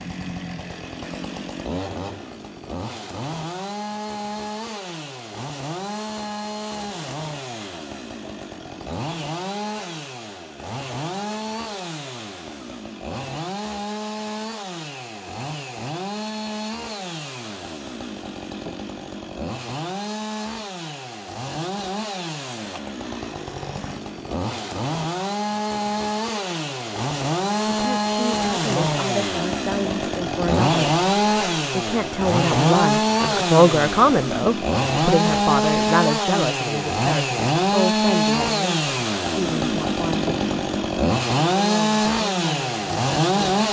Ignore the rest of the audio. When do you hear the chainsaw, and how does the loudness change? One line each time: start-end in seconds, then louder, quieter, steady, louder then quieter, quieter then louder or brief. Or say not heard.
0.0-43.6 louder.